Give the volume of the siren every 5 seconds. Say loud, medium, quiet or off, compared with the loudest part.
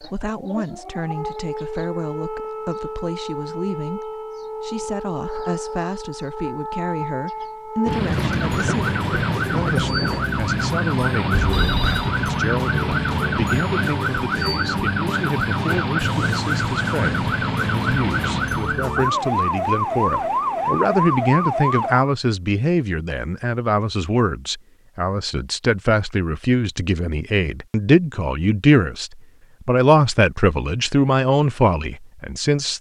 medium, loud, loud, loud, loud, off, off.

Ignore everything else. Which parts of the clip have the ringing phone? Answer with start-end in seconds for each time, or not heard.
11.3-12.1.